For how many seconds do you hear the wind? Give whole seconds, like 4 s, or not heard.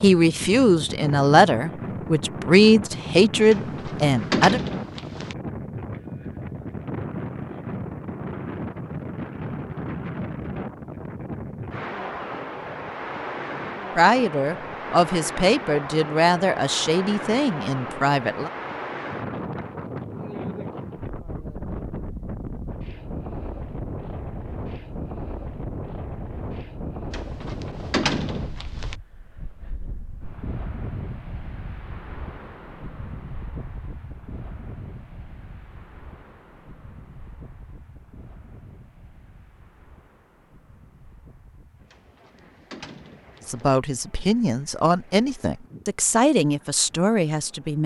48 s.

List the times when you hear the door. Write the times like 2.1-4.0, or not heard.
3.5-5.3, 27.1-28.9, 41.9-43.8.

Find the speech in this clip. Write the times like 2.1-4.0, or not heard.
0.0-4.6, 13.9-18.5, 43.5-47.8.